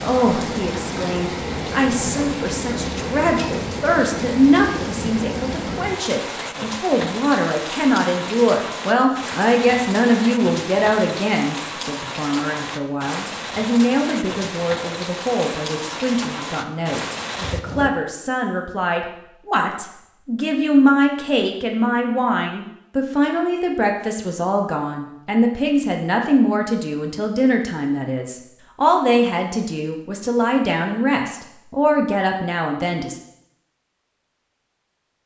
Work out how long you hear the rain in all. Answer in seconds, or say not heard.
18 s.